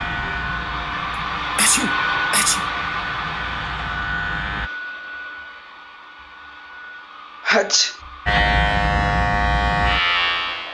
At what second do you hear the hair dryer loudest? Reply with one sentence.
The volume of the hair dryer peaks at 2 seconds.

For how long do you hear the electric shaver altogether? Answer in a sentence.
The electric shaver can be heard for 7 seconds in total.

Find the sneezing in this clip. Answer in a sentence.
The sneezing can be heard from 1.6 to 2.6 s and from 7.5 to 8.0 s.